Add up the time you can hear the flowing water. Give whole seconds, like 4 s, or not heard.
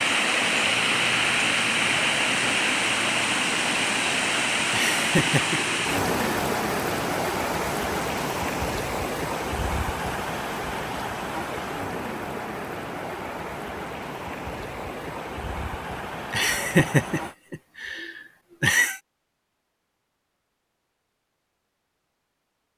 17 s.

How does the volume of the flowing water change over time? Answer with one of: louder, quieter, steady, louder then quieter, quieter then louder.
quieter.